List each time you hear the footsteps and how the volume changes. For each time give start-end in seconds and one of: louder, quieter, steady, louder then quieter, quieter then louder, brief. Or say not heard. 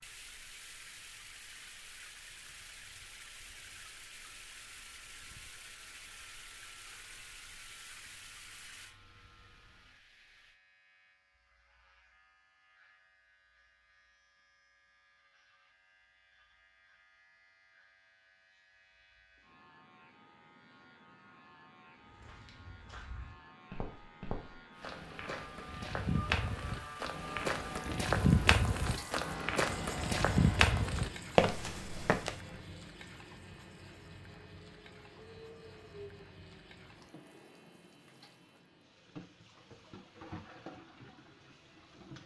22.1-32.4 louder.